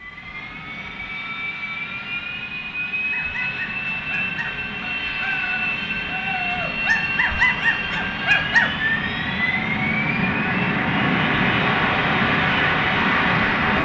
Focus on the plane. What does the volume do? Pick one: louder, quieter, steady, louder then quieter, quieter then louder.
louder.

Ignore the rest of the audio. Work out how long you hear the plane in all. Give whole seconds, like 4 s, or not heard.
14 s.